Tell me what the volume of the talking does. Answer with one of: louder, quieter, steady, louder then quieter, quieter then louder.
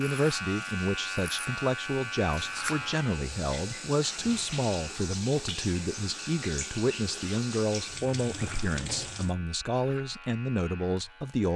steady.